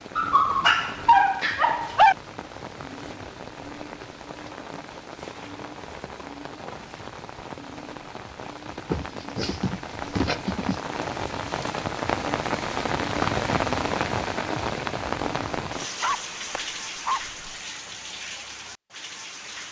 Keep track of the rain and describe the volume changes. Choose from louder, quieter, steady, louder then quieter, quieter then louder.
louder then quieter.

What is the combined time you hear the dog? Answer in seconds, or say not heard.
5 s.